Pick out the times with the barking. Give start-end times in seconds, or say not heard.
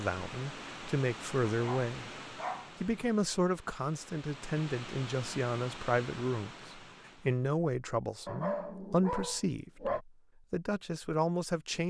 1.4-3.1, 8.2-10.0.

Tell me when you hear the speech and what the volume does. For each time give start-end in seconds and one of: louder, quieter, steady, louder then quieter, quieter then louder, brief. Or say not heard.
0.0-2.1 brief
2.8-11.8 steady.